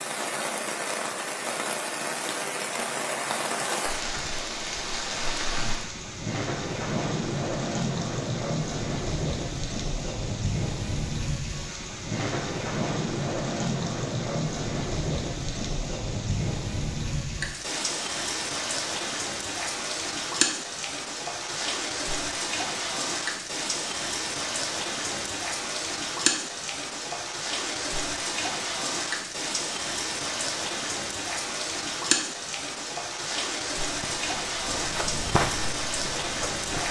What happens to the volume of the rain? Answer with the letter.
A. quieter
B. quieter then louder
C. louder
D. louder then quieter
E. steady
E.